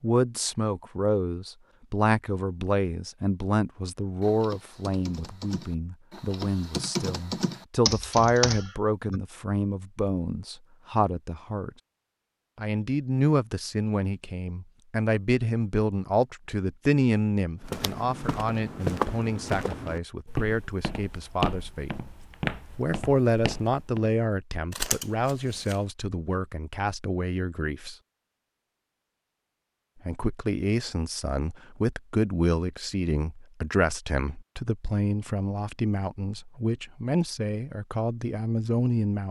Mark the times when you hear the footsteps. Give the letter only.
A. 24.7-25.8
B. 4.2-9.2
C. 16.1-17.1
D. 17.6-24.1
D.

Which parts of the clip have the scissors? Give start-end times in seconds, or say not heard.
24.7-25.8.